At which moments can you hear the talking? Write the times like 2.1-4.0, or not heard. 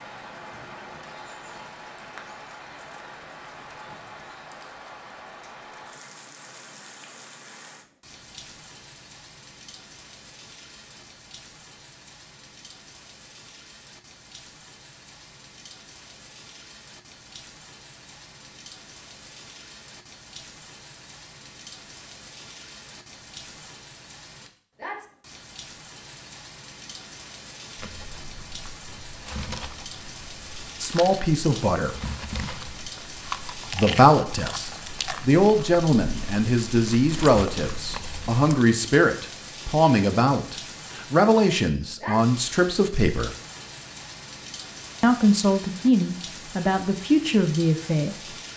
30.8-31.9, 33.7-43.3, 45.0-48.4.